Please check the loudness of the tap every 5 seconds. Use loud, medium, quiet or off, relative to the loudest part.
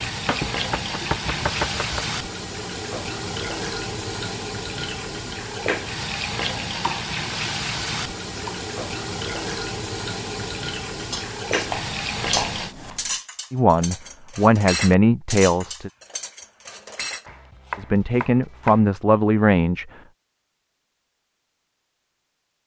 loud, loud, loud, off, off.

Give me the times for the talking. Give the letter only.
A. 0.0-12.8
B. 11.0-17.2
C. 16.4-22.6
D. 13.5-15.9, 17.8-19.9
D.